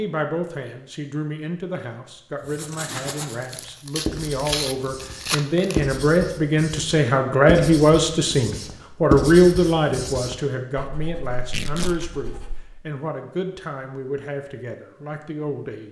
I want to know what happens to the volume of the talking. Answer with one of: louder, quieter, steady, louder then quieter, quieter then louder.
louder then quieter.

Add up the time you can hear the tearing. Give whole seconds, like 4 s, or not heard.
3 s.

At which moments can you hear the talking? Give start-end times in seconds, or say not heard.
0.0-15.8.